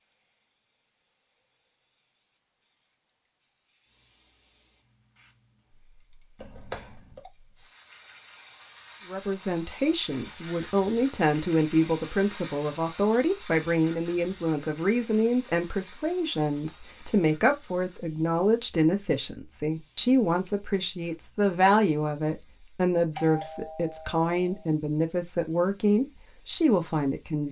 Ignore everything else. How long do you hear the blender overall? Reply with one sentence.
You can't hear the blender here.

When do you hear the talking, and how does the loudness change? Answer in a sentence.
The talking can be heard from 9.1 to 27.4 s, at a steady volume.